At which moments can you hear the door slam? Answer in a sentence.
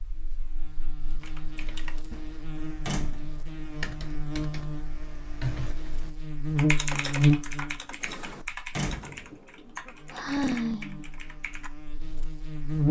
The door slam can be heard from 2.9 to 3.5 s and from 8.8 to 9.3 s.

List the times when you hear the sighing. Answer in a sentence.
The sighing can be heard from 10.1 to 11.0 s.